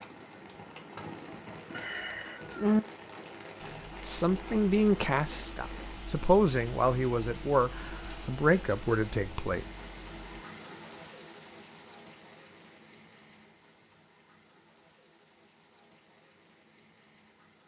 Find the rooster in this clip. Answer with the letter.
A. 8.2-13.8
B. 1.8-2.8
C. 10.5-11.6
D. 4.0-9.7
B.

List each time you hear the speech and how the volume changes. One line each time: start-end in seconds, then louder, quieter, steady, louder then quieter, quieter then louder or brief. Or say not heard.
4.0-9.7 steady.